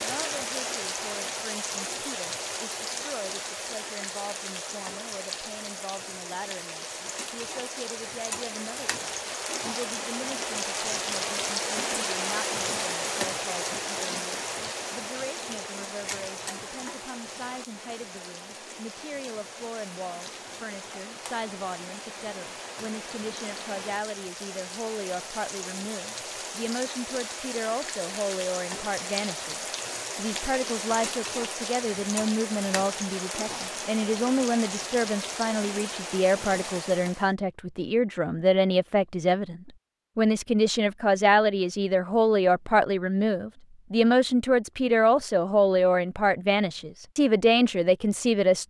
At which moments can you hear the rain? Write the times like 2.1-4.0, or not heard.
0.0-37.3.